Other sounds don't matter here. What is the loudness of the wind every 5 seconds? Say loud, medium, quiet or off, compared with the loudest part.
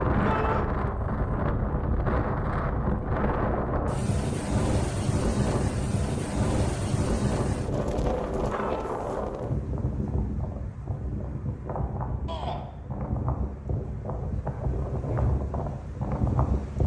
loud, loud, medium, loud.